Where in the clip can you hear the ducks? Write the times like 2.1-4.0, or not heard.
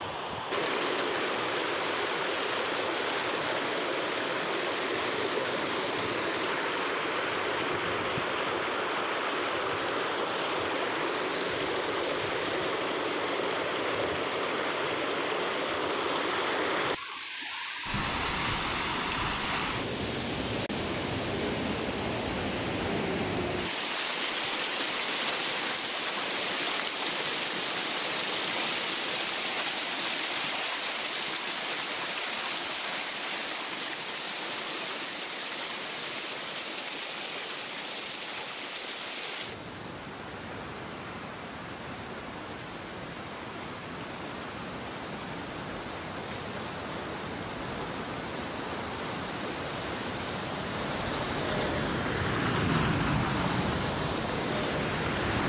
not heard.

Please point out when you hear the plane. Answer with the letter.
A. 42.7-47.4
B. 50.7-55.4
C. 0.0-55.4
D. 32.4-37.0
B.